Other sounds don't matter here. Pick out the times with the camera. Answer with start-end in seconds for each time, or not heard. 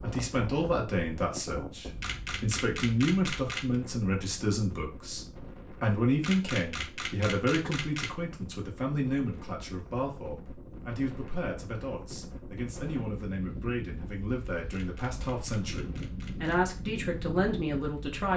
2.0-3.8, 6.2-8.2, 14.7-16.6.